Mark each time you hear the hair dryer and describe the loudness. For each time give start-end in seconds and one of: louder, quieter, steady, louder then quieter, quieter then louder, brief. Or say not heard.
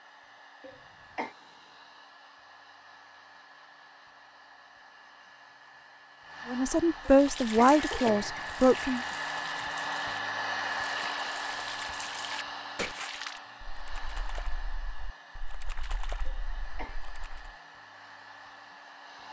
0.0-19.2 louder then quieter.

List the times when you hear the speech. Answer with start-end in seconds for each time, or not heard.
6.5-9.0.